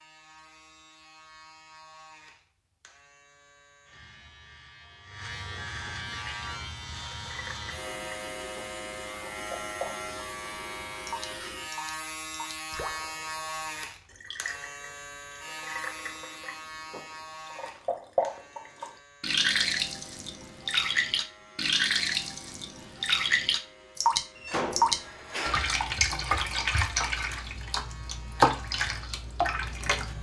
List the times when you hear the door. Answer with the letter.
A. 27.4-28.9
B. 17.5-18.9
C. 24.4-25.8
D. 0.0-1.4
C.